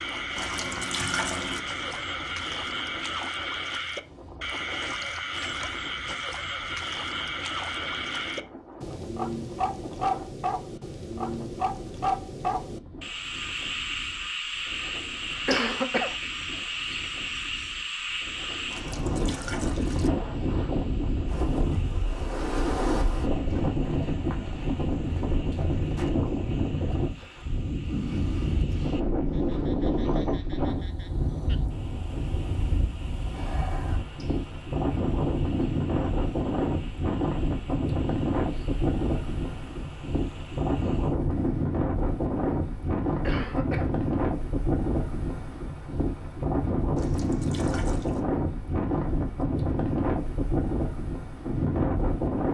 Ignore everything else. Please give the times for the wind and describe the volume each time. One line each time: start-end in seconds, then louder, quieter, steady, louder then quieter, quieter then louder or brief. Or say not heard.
0.0-52.4 louder.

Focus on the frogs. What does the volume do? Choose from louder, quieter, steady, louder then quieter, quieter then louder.
quieter.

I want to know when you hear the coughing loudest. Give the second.
16 s.